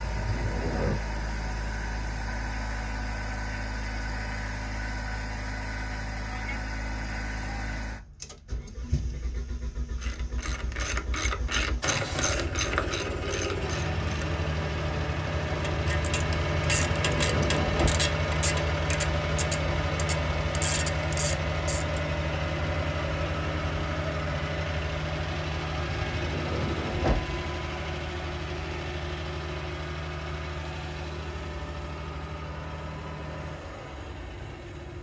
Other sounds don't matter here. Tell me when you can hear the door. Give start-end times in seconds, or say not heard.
0.0-1.0, 16.7-18.0, 25.9-27.4.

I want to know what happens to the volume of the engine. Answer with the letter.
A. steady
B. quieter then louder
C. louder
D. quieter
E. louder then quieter
E.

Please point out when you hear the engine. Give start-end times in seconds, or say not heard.
0.0-34.9.